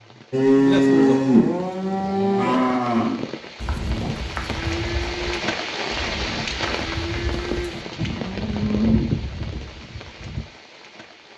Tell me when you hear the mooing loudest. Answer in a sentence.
The loudest moment of the mooing is at 1 second.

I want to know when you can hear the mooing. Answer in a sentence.
The mooing can be heard from 0.3 to 10.4 s.